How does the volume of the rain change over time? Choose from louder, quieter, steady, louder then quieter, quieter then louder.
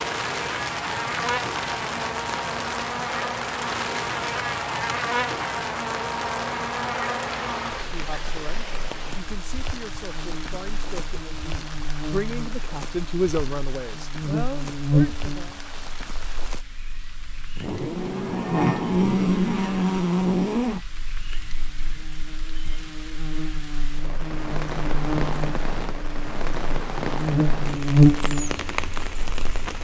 quieter then louder.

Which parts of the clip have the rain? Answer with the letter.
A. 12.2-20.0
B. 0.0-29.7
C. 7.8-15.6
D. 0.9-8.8
B.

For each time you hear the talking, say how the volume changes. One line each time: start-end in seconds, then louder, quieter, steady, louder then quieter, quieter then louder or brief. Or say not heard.
7.8-15.6 louder then quieter.